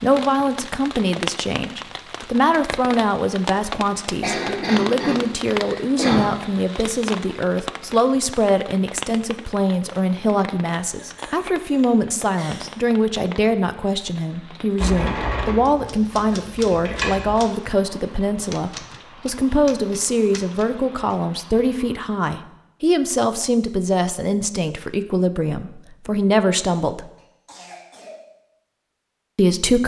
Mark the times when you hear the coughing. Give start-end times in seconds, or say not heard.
4.2-6.2, 10.9-12.8, 27.1-28.2.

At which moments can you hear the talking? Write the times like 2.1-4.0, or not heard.
0.0-27.1, 29.4-29.8.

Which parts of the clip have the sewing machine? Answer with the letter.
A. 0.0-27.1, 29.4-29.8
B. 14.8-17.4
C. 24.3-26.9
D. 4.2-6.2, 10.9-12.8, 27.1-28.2
B.